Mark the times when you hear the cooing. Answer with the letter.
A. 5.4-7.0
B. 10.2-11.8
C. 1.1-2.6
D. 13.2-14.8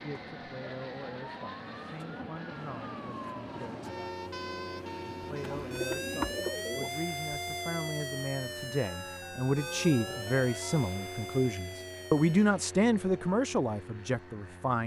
A.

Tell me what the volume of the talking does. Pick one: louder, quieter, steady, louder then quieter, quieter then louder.
louder.